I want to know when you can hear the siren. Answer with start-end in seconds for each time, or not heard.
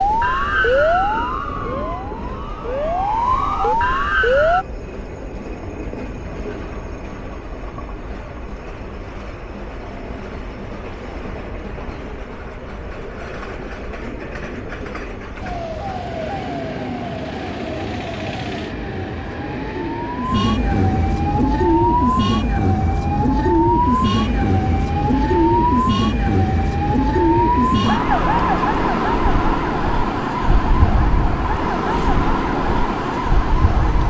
0.0-4.7, 15.4-34.0.